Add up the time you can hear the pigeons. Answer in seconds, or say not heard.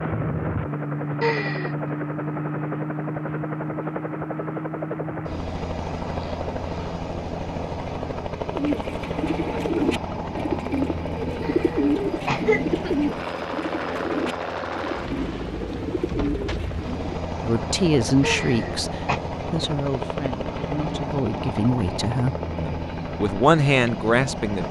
9 s.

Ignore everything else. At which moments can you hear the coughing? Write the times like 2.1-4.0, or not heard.
1.2-1.9, 11.4-12.9, 18.2-19.2.